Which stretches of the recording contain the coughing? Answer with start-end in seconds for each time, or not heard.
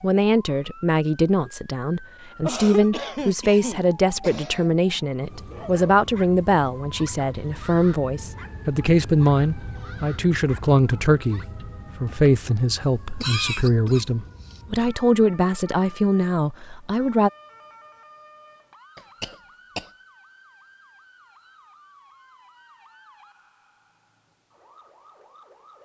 2.4-4.7, 13.2-14.6, 18.9-19.9.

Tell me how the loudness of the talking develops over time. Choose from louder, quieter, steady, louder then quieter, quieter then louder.
steady.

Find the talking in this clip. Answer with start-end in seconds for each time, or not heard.
0.0-17.3.